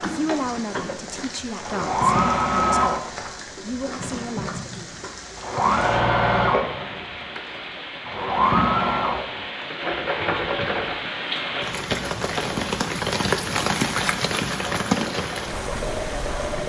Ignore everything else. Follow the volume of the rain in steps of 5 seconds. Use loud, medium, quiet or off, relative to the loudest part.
quiet, medium, loud, medium.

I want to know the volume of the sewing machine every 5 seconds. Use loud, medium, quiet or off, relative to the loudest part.
loud, loud, medium, medium.